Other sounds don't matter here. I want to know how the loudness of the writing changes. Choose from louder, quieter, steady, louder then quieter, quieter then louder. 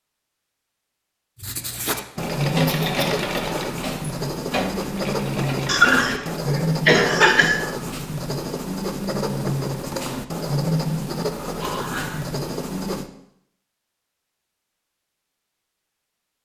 steady.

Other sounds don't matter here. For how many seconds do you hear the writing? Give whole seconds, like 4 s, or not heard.
12 s.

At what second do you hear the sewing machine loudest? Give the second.
3 s.